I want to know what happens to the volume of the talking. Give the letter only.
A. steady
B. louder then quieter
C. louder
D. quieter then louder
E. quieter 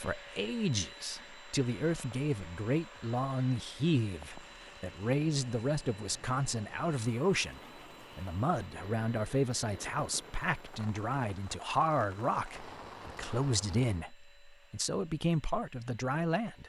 A.